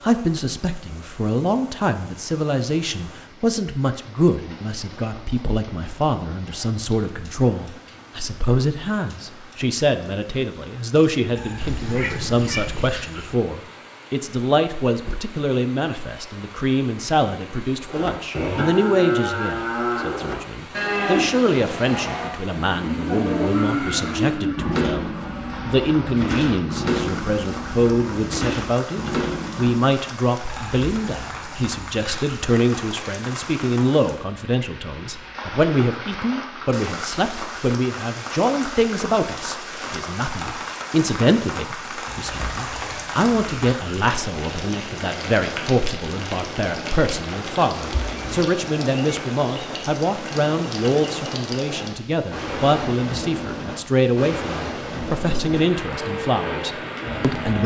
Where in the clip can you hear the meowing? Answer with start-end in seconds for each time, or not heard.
11.6-12.9, 23.5-24.8, 47.8-48.5.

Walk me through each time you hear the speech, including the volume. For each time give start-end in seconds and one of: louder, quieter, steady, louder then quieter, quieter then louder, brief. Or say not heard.
0.0-57.6 steady.